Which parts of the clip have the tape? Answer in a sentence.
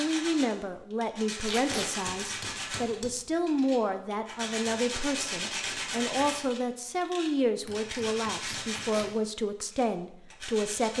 The tape can be heard from 1.4 to 1.9 s and from 8.7 to 9.1 s.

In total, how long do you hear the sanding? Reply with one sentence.
You can hear the sanding for 11 seconds altogether.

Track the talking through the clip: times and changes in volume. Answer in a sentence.
You can hear the talking from 0.0 to 10.9 s, at a steady volume.